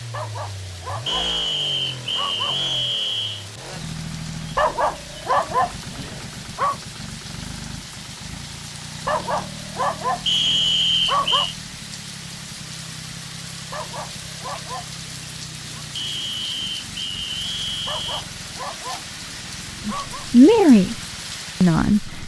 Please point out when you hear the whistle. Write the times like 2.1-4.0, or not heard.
1.1-3.5, 10.2-11.6, 15.9-18.2.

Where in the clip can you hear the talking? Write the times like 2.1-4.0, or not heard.
19.9-20.9, 21.6-22.2.